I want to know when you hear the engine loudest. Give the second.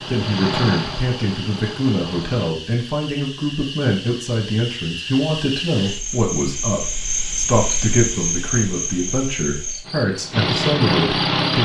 11 s.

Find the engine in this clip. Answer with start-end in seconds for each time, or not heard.
0.0-2.5, 9.8-11.6.